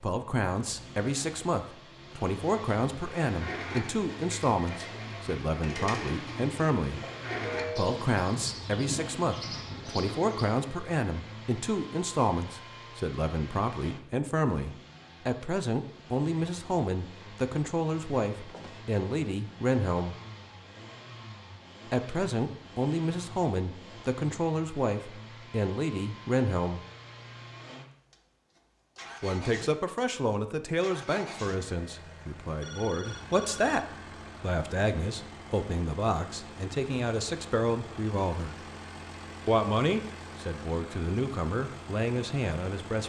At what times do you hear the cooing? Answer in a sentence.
You can hear the cooing from 3.2 to 10.4 s.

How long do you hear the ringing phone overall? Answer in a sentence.
The ringing phone can be heard for 2 seconds in total.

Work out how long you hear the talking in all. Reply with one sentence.
The talking can be heard for 37 seconds in total.